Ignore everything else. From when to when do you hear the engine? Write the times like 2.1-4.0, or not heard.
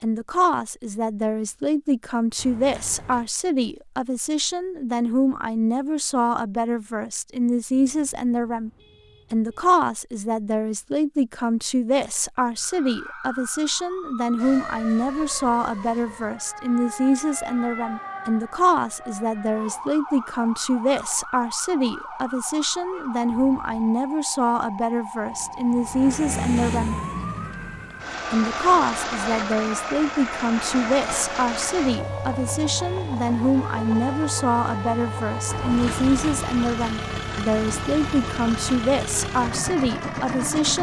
25.2-40.7.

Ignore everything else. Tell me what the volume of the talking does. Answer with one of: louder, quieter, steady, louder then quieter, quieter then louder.
steady.